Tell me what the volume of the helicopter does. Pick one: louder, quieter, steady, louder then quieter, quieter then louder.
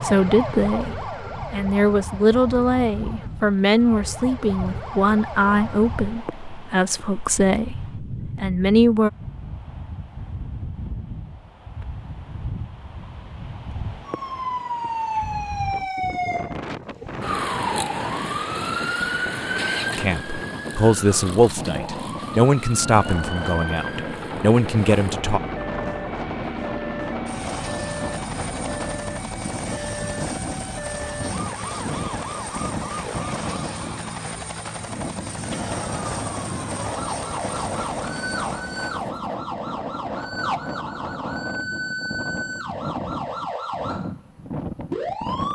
steady.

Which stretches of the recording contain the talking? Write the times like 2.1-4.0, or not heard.
0.0-9.1, 19.9-25.4.